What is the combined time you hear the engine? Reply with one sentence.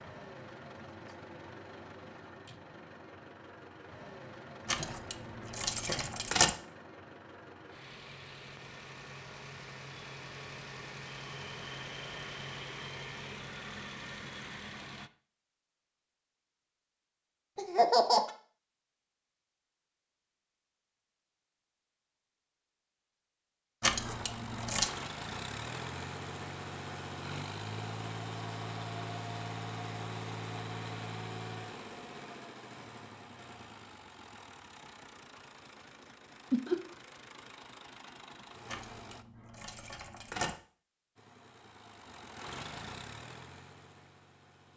The engine can be heard for 34 seconds in total.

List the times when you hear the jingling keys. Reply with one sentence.
You can hear the jingling keys from 4.7 to 6.5 s, from 23.8 to 24.9 s and from 38.6 to 40.5 s.